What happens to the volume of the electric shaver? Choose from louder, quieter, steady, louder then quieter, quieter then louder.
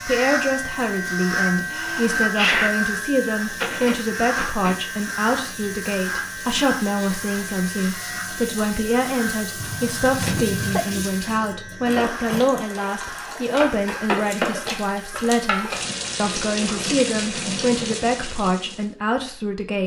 quieter.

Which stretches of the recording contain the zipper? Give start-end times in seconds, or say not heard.
not heard.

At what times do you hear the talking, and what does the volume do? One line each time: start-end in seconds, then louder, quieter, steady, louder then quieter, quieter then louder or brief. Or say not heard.
0.0-19.8 steady.